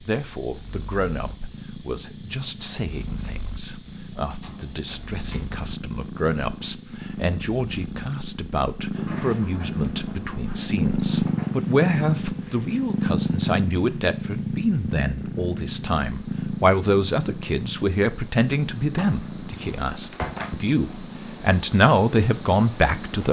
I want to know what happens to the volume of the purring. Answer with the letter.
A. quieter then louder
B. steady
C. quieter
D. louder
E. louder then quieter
E.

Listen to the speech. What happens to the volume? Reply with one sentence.
The volume of the speech goes up.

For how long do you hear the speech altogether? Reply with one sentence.
The speech can be heard for 23 seconds in total.